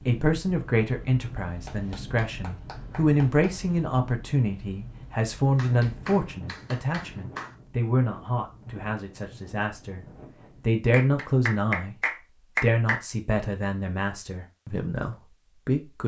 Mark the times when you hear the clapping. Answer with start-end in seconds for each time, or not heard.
1.6-3.5, 5.5-7.5, 10.9-13.0.